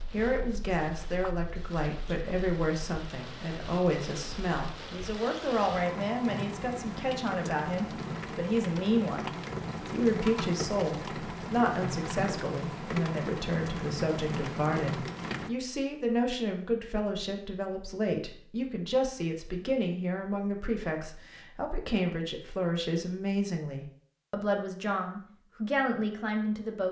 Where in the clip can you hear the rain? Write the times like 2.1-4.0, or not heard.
0.0-15.5.